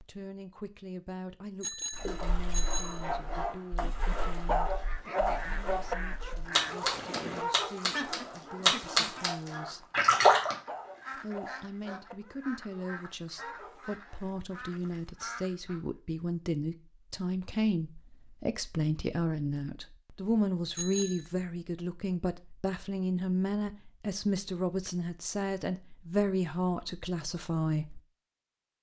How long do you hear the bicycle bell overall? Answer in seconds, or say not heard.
2 s.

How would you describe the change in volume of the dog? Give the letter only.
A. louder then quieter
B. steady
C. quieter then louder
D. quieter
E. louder
D.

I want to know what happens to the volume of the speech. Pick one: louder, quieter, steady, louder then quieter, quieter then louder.
louder.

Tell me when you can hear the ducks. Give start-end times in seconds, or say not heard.
4.7-15.8.